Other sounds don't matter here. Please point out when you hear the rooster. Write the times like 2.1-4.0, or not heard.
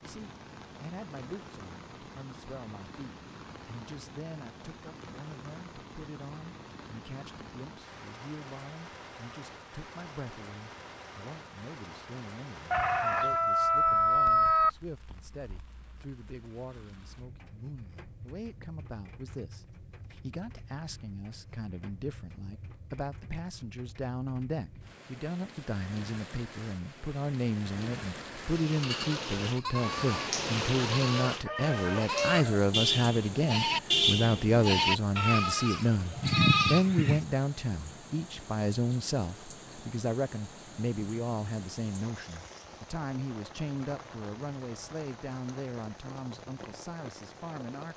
12.7-14.7, 31.2-32.6.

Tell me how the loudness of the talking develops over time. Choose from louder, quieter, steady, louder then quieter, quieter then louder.
louder then quieter.